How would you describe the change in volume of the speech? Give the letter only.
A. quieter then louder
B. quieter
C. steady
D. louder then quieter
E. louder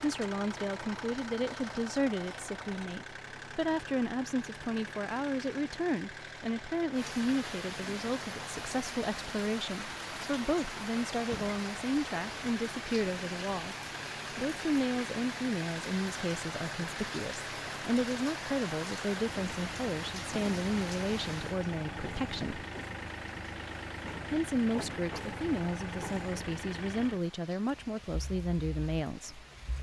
C.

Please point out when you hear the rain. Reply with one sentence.
The rain can be heard from 6.9 to 29.7 s.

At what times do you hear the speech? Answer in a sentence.
The speech can be heard from 0.0 to 13.8 s, from 14.3 to 22.6 s and from 24.3 to 29.4 s.